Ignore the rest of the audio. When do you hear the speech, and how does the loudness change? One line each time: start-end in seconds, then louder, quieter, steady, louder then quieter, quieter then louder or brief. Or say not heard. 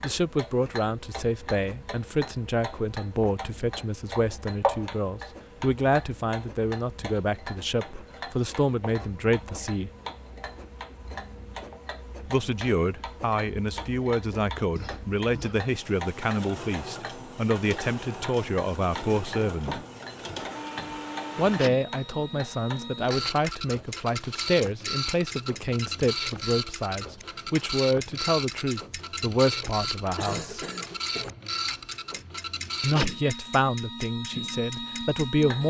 0.0-9.9 steady
12.2-19.8 steady
21.4-30.6 steady
32.8-35.6 brief.